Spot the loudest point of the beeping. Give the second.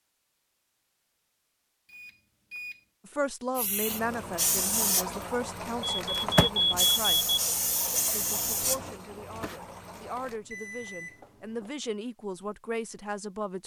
7 s.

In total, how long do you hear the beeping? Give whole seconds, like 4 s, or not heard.
4 s.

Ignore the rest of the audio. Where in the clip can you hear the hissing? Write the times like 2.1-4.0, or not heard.
3.5-10.3.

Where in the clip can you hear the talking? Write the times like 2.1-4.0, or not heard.
3.0-7.3, 8.1-13.6.